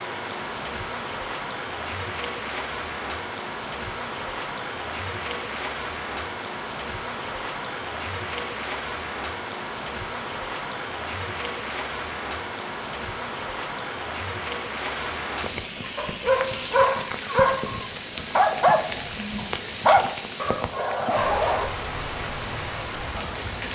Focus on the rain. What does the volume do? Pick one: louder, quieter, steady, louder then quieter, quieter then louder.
steady.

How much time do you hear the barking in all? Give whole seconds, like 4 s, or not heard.
6 s.